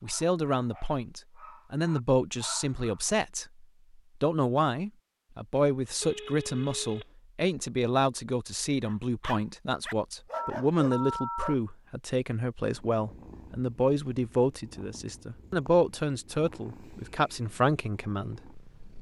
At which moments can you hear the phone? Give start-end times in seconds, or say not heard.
6.0-7.0, 10.3-11.6.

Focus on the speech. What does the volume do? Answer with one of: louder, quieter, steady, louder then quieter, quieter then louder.
steady.